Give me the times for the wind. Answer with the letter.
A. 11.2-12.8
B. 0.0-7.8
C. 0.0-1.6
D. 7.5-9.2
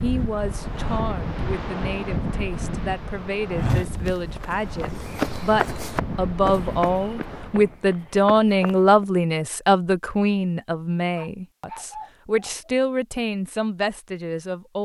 B.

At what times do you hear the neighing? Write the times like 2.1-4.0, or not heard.
not heard.